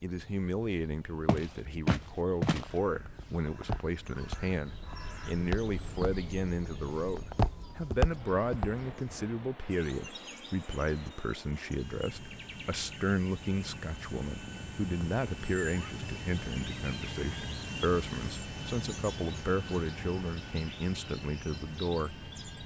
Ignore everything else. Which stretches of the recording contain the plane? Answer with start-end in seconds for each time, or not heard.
8.0-22.6.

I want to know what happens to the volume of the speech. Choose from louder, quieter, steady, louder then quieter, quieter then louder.
steady.